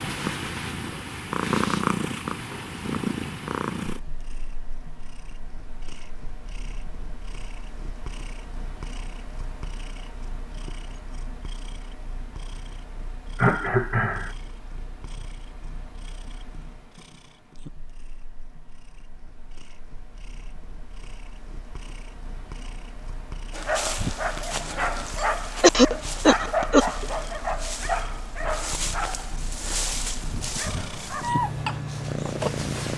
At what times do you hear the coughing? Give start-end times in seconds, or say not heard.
13.3-14.3, 25.6-27.1.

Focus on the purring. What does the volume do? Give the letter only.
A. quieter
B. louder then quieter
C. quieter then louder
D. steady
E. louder
C.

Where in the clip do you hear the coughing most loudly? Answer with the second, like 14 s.
26 s.